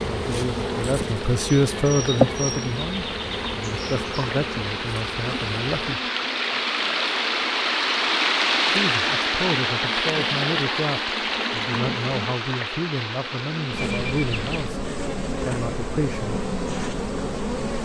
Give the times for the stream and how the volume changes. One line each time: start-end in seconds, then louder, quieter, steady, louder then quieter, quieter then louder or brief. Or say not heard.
0.0-14.8 louder then quieter.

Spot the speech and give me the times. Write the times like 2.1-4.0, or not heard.
0.1-6.0, 8.7-16.4.